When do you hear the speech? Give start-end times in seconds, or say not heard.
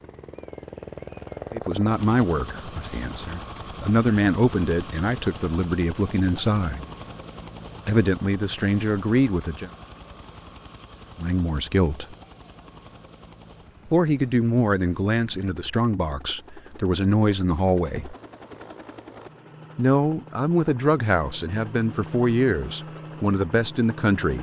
1.5-6.9, 7.8-9.7, 11.2-12.2, 13.9-18.1, 19.8-24.3.